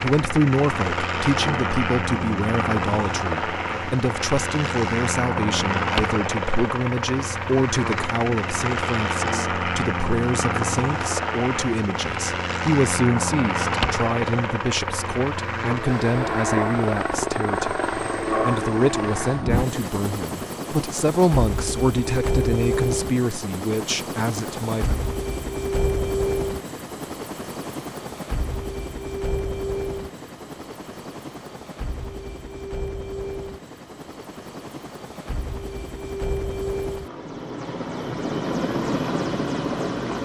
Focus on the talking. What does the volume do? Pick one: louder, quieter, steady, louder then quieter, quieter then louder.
steady.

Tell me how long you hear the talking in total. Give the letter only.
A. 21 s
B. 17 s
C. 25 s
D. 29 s
C.